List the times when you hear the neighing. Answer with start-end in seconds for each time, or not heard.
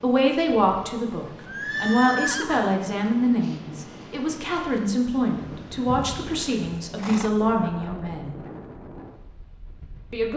1.4-2.8, 6.2-7.3.